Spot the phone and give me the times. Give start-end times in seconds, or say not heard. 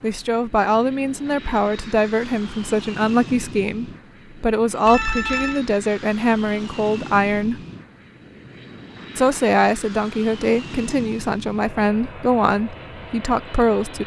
4.8-5.7.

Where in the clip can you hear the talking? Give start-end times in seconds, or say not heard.
0.0-7.6, 9.2-14.0.